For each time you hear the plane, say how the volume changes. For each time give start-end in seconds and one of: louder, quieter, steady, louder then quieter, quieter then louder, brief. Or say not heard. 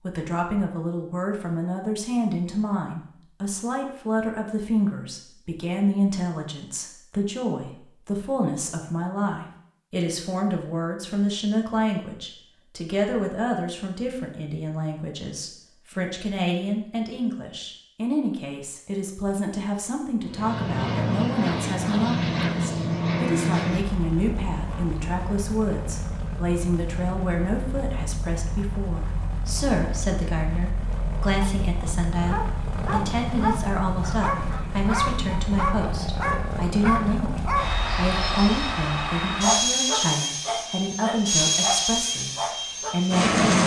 20.2-43.6 quieter then louder.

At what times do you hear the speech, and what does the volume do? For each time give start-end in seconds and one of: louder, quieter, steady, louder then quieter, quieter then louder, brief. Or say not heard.
0.0-43.6 steady.